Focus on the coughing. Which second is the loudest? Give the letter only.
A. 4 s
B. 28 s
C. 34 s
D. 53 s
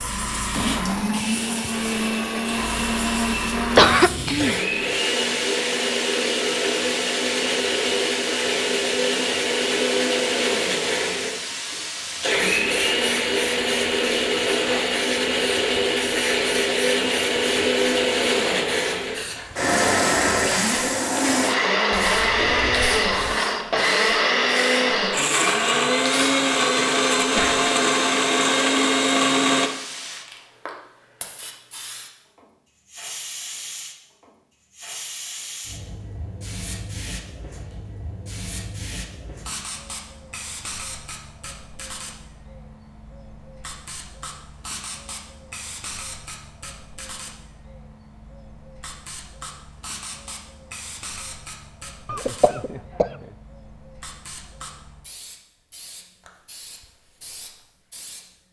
A.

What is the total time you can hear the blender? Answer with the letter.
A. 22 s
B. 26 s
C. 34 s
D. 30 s
D.